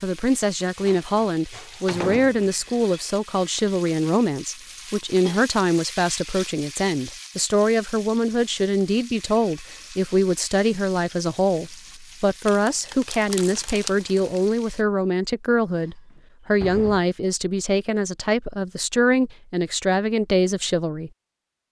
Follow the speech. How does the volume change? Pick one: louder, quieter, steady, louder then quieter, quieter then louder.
steady.